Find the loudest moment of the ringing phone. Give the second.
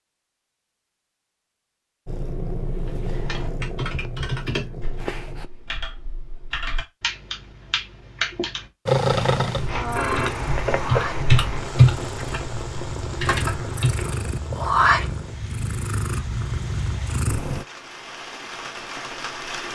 10 s.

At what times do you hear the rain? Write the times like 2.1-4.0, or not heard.
9.7-19.7.